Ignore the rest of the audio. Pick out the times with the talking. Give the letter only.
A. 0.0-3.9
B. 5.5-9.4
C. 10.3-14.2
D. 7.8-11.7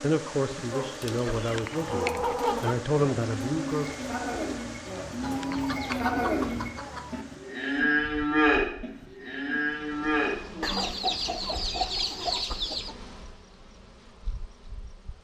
A.